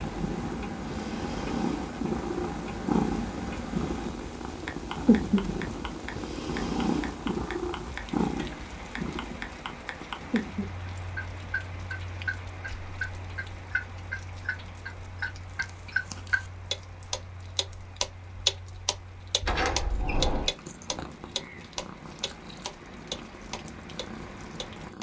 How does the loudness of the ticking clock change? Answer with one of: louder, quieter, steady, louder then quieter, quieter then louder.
louder.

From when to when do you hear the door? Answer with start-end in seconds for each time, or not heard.
19.4-20.6.